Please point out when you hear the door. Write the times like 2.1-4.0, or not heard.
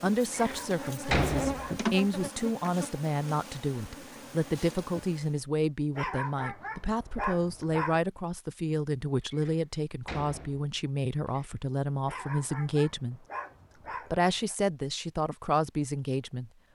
0.3-1.8, 9.3-11.5.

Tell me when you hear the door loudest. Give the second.
1 s.